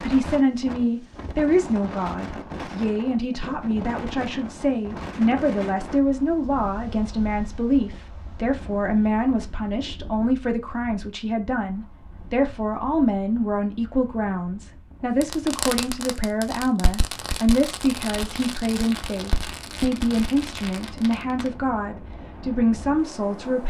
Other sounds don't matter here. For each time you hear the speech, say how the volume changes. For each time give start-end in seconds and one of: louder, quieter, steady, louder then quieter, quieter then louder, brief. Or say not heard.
0.0-23.6 steady.